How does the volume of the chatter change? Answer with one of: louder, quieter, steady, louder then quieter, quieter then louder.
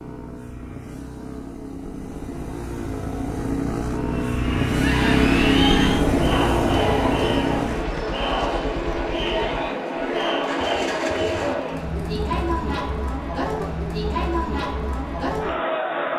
steady.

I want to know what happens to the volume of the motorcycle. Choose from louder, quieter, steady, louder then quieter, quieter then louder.
louder then quieter.